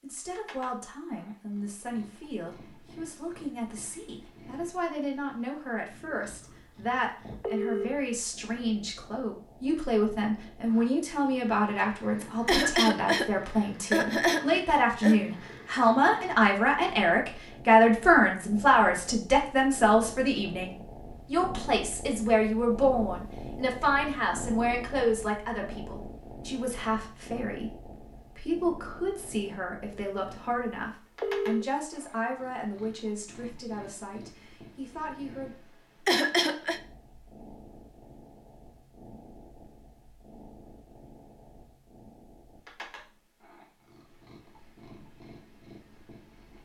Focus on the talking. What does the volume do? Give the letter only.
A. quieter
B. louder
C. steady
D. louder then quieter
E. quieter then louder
D.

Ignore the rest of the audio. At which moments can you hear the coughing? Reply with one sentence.
The coughing can be heard from 12.4 to 15.2 s and from 36.0 to 36.8 s.